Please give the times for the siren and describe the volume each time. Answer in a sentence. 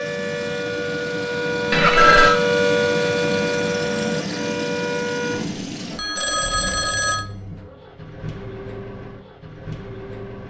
The siren can be heard from 0.0 to 5.5 s, getting louder then quieter.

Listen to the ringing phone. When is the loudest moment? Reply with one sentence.
The volume of the ringing phone peaks at 2 seconds.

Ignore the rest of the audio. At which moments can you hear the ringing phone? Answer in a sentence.
The ringing phone can be heard from 1.7 to 2.4 s and from 5.3 to 7.2 s.